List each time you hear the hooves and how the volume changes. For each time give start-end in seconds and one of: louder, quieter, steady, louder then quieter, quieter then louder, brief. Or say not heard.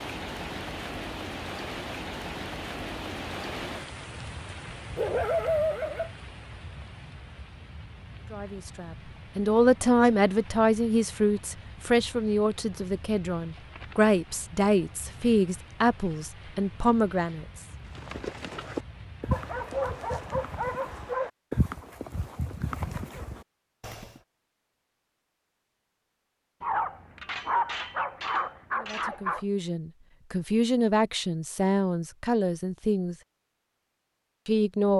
17.9-24.2 quieter then louder.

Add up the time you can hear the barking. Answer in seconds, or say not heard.
6 s.